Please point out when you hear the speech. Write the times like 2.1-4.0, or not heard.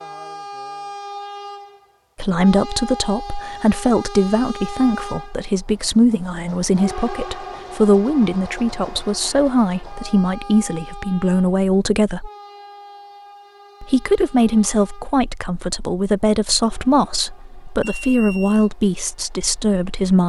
2.1-12.3, 13.8-20.2.